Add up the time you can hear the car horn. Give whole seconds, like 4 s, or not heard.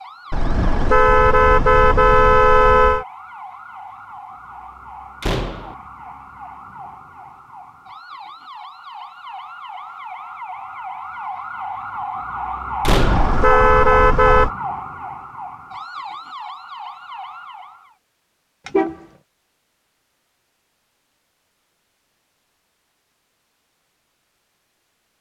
5 s.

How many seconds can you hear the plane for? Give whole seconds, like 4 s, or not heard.
not heard.